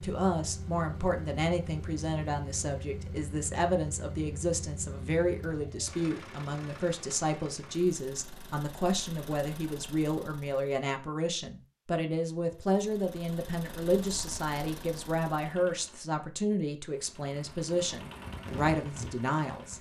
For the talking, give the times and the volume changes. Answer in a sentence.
You can hear the talking from 0.0 to 19.7 s, at a steady volume.